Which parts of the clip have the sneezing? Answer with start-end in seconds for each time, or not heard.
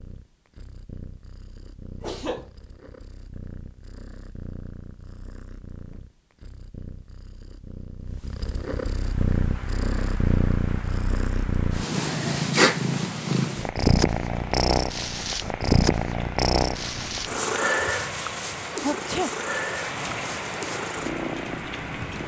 2.0-2.5, 18.8-19.4.